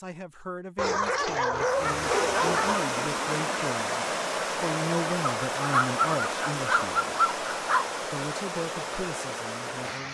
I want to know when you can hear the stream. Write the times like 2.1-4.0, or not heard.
1.6-10.0.